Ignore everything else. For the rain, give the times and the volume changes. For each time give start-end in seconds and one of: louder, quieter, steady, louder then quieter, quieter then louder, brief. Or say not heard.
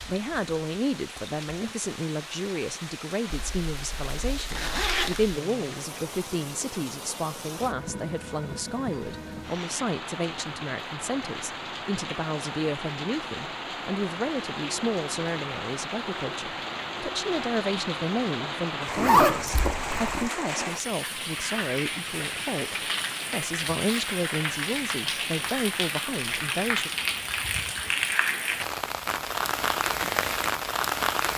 0.0-31.3 louder.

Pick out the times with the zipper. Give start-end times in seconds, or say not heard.
3.3-5.4, 18.9-20.3.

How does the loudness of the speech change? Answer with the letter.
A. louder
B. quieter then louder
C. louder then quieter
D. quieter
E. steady
E.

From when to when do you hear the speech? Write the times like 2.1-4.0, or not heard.
0.1-26.9.